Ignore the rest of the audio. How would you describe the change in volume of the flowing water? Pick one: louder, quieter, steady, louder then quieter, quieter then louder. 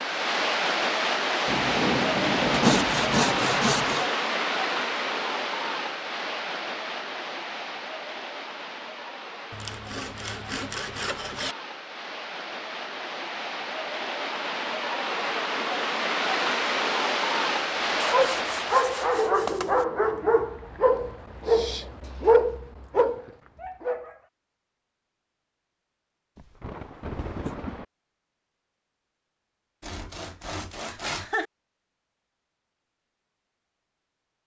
quieter then louder.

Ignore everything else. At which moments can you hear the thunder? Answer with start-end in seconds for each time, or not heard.
1.4-3.5, 26.4-27.9.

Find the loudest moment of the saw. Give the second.
3 s.